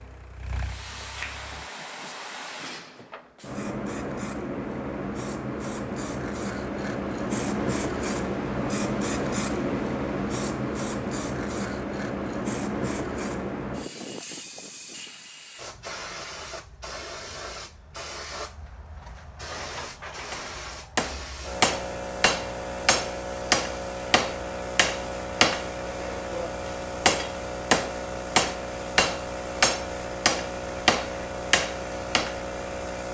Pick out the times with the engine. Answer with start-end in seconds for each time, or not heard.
0.0-1.7.